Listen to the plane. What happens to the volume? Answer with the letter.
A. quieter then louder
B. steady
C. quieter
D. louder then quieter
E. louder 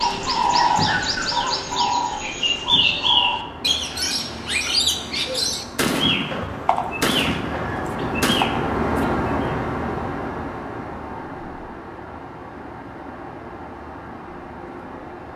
D.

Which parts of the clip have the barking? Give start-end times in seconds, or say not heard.
not heard.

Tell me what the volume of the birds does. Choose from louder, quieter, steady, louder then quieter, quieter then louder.
quieter.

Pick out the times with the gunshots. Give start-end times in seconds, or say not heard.
5.2-8.5.